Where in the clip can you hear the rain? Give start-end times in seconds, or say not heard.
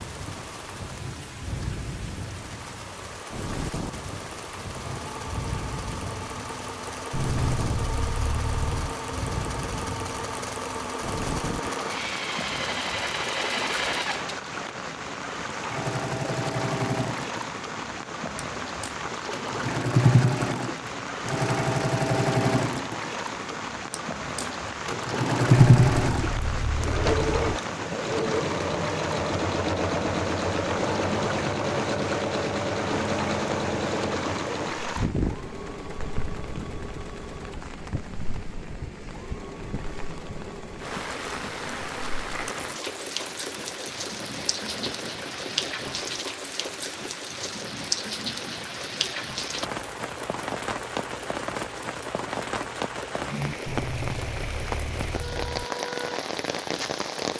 0.0-57.3.